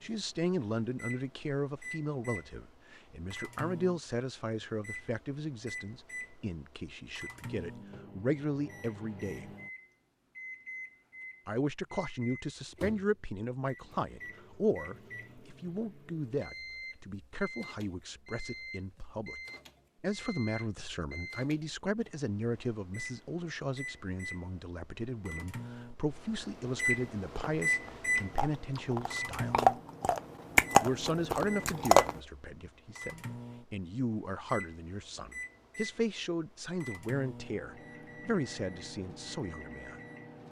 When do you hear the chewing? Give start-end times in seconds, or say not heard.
27.2-32.2.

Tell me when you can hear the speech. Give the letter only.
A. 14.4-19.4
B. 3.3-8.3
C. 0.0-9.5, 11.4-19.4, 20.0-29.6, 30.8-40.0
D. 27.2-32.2
C.